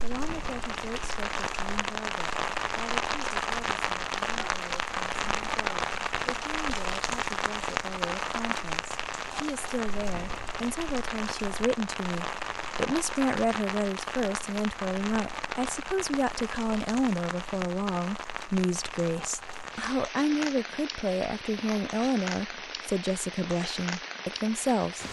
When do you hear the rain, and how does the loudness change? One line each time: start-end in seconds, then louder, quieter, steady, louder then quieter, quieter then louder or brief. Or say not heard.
0.0-25.0 quieter.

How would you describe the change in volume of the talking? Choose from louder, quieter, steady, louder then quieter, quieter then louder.
louder.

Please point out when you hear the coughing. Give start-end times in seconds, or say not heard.
not heard.